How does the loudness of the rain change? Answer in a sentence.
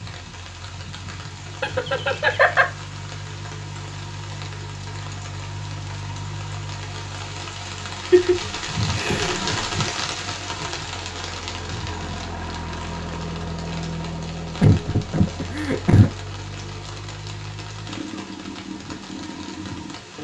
The loudness of the rain goes up, then down.